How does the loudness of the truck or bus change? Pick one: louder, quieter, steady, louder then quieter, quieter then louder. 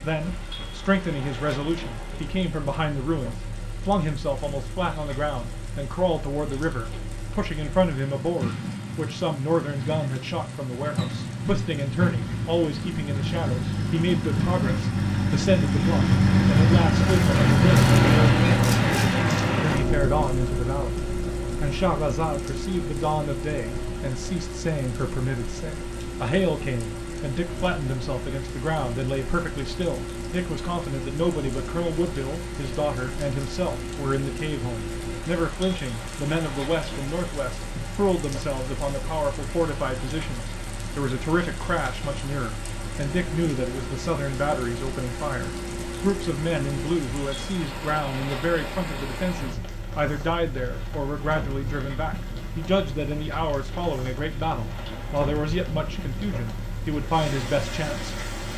louder then quieter.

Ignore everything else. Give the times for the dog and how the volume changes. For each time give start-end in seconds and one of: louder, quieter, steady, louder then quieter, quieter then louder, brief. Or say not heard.
not heard.